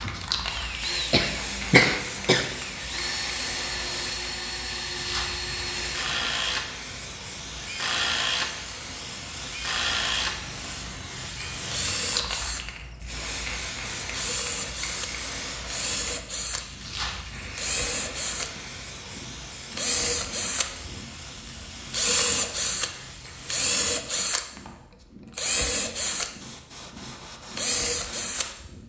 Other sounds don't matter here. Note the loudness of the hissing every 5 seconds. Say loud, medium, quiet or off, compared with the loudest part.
loud, loud, loud, loud, medium, medium.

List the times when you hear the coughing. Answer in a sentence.
You can hear the coughing from 1.1 to 2.5 s.